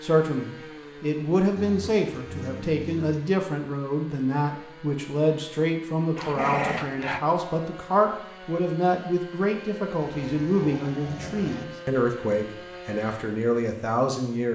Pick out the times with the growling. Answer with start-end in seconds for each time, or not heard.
1.6-3.2, 6.2-7.2, 10.0-11.7.